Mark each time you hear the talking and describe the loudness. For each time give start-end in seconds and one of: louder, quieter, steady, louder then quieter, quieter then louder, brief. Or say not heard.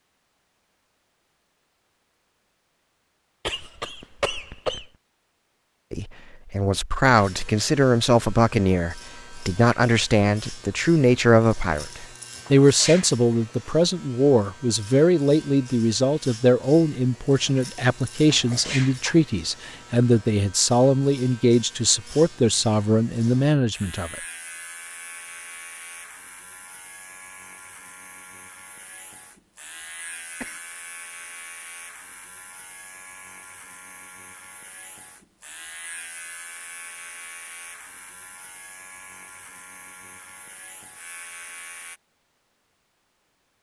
5.9-24.1 steady.